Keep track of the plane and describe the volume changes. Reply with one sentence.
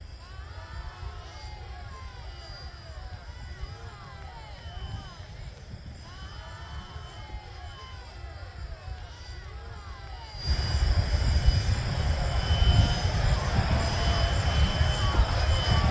The loudness of the plane goes up.